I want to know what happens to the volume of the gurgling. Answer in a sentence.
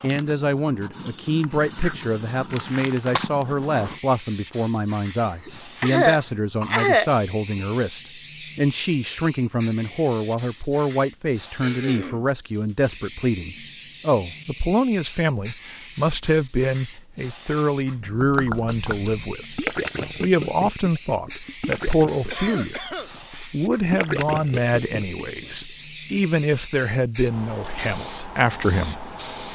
The volume of the gurgling goes down, then up.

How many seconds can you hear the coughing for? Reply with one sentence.
The coughing can be heard for 4 seconds in total.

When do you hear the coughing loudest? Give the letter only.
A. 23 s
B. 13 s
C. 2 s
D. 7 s
D.